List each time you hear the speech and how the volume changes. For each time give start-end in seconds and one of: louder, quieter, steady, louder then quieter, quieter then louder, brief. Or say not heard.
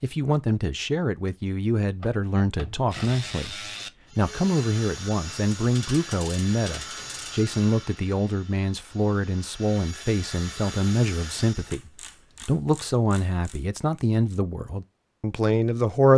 0.0-16.1 steady.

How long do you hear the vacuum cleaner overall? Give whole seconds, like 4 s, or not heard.
not heard.